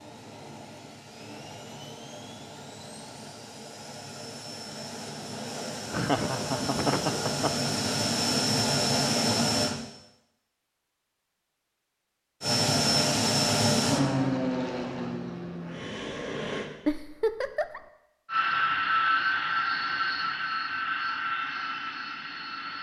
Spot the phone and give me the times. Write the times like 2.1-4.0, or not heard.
not heard.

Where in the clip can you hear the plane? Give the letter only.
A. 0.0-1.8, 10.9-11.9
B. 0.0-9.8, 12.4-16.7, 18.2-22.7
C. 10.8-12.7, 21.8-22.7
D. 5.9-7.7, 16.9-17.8
B.